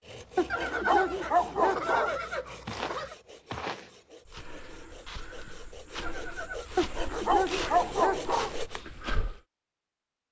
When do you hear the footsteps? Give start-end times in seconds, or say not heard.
2.6-9.4.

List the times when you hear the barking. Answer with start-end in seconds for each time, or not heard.
0.3-2.1, 6.8-8.6.